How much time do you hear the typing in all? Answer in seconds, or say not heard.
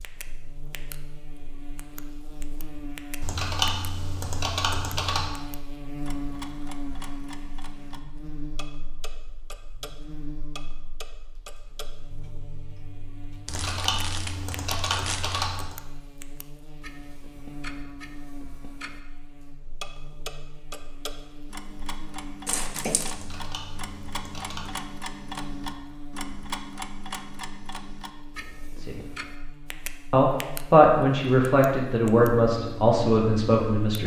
6 s.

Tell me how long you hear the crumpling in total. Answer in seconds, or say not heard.
3 s.